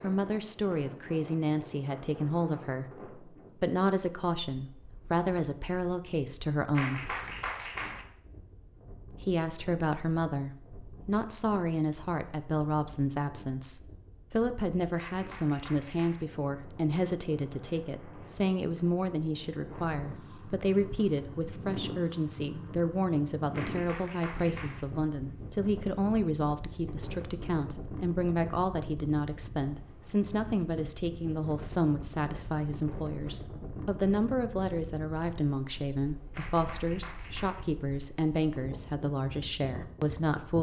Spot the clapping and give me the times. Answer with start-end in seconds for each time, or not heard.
6.8-8.1, 14.9-16.2, 23.5-24.9, 36.3-37.6.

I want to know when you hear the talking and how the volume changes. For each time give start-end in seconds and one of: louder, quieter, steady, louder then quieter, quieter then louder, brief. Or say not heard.
0.0-7.2 steady
9.1-40.5 steady.